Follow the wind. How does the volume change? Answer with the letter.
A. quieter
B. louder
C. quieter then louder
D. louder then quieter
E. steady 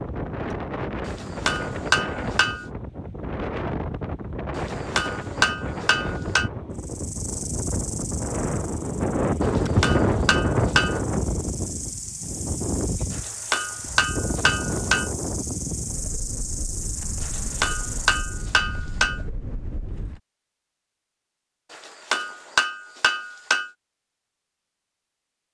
D.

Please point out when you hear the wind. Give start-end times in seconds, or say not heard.
0.0-20.2.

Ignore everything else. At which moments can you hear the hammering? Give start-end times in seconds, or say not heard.
1.1-2.6, 4.5-6.5, 9.4-11.0, 13.1-15.1, 17.2-19.2, 21.7-23.7.